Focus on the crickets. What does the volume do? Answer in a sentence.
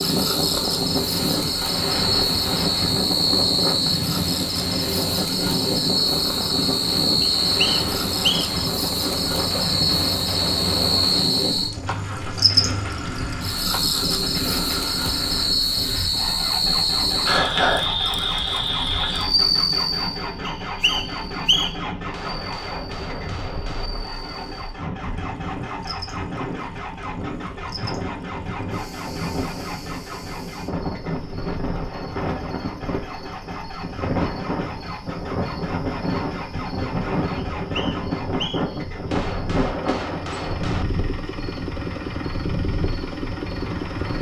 The volume of the crickets goes down.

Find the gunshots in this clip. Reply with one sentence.
The gunshots can be heard from 9.4 to 11.2 s, from 21.9 to 23.9 s and from 38.9 to 40.9 s.